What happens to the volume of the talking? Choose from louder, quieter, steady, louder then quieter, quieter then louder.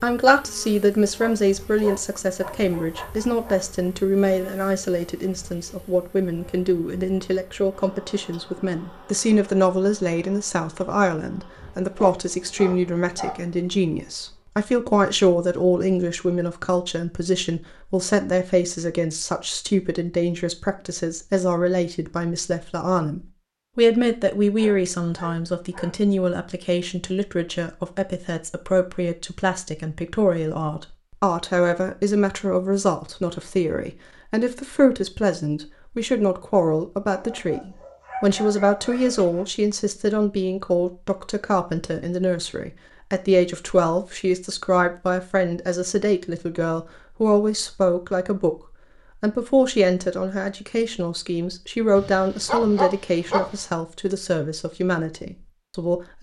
steady.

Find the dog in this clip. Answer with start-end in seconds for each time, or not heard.
1.1-3.6, 11.9-13.4, 24.6-25.9, 37.0-39.5, 52.0-53.5.